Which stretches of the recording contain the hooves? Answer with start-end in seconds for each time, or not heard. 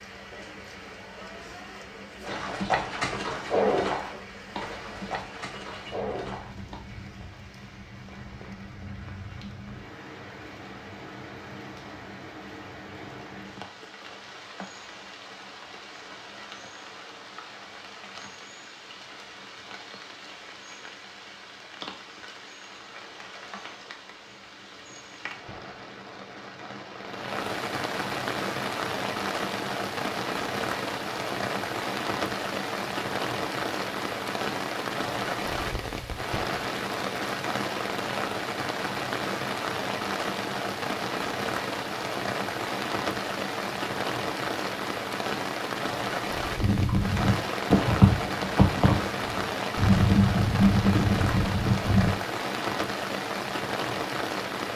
2.2-6.8, 46.6-52.1.